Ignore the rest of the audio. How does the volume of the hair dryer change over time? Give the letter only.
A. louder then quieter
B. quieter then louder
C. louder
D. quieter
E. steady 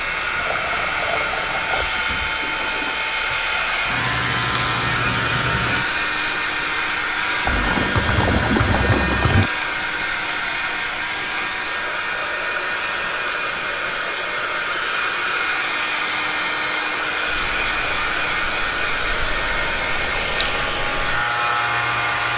E.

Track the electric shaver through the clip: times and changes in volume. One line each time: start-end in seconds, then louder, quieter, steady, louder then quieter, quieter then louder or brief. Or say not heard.
0.0-22.3 quieter then louder.